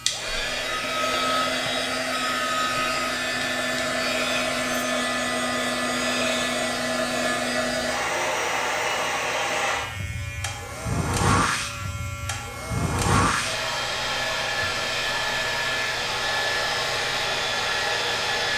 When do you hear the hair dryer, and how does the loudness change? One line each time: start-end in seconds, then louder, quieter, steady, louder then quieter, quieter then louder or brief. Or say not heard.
0.1-18.5 steady.